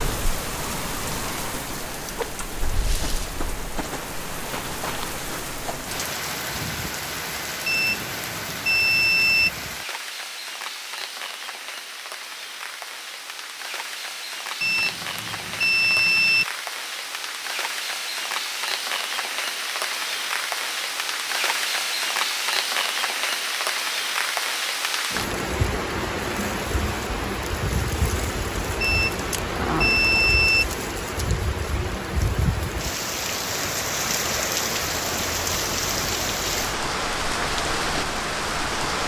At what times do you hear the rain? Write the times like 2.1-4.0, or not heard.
0.0-39.0.